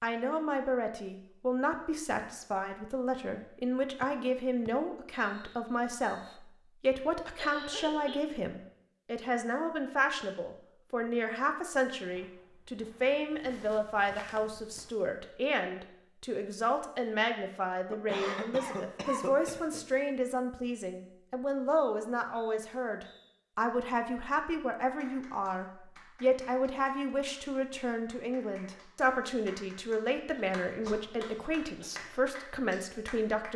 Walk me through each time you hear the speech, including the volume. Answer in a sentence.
The speech can be heard from 0.0 to 33.5 s, at a steady volume.